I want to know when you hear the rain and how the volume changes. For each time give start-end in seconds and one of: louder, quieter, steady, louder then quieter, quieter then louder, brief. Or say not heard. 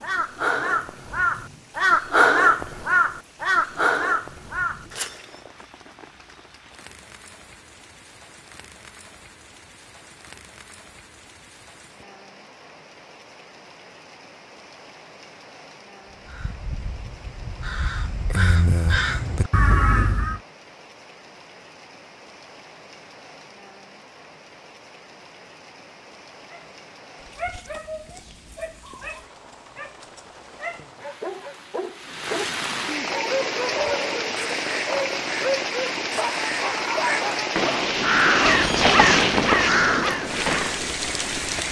0.0-41.6 louder.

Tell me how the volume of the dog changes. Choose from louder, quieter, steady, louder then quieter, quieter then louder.
louder.